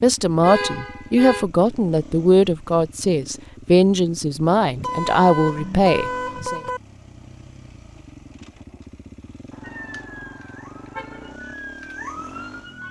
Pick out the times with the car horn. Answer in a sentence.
The car horn can be heard from 0.4 to 1.4 s, from 4.8 to 6.8 s and from 9.5 to 11.4 s.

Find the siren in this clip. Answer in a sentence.
The siren can be heard from 9.6 to 12.8 s.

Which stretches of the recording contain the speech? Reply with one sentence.
The speech can be heard from 0.0 to 6.6 s.